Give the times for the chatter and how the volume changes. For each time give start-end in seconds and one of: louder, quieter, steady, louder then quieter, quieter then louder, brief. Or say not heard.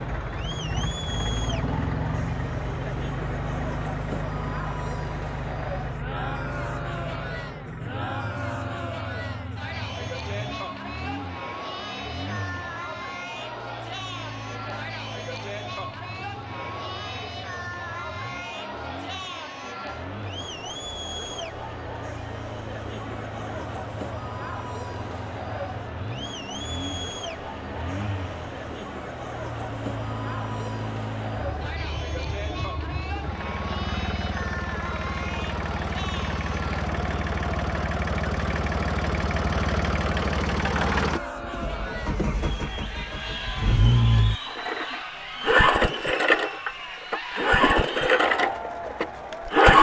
0.0-49.7 steady.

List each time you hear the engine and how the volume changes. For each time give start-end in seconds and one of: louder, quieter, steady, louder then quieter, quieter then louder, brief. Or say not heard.
0.0-49.7 quieter then louder.